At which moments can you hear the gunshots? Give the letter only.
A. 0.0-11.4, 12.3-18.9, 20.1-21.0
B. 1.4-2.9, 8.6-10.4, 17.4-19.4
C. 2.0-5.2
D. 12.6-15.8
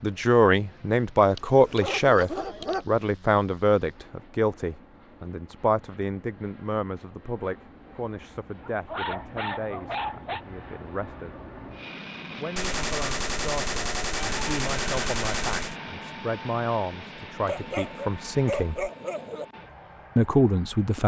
D.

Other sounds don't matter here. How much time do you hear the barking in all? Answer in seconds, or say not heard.
5 s.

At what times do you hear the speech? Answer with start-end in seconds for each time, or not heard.
0.0-11.4, 12.3-18.9, 20.1-21.0.